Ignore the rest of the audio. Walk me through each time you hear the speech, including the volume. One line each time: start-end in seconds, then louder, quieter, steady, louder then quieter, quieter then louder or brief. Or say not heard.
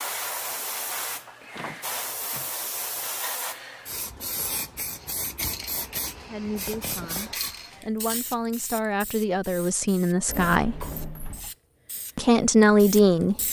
6.2-10.8 louder
12.2-13.3 brief.